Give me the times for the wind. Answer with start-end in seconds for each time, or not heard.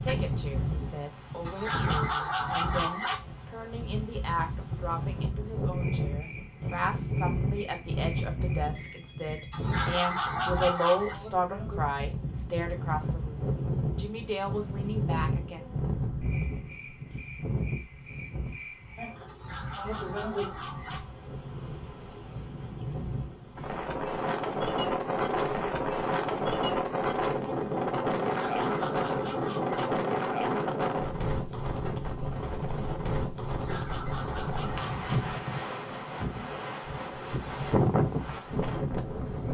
0.0-39.5.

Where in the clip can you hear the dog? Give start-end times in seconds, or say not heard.
1.4-3.2, 9.5-11.2, 19.2-21.0, 28.4-29.9, 33.5-35.2.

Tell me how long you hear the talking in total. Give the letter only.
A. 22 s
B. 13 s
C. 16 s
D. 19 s
C.